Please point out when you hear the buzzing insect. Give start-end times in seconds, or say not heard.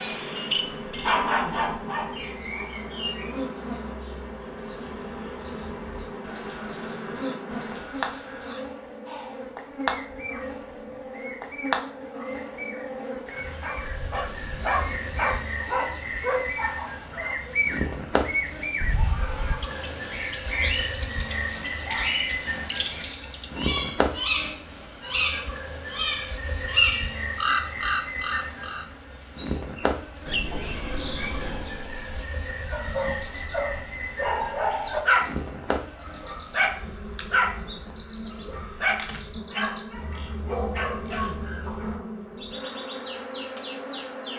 0.0-44.3.